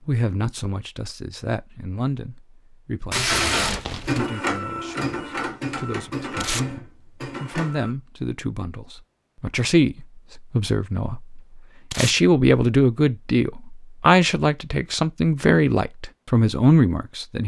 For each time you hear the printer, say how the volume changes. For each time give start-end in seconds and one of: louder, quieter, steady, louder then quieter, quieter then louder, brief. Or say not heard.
3.2-8.0 quieter.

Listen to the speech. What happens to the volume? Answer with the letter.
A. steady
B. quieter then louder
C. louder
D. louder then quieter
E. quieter
C.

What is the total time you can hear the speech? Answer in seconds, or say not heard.
17 s.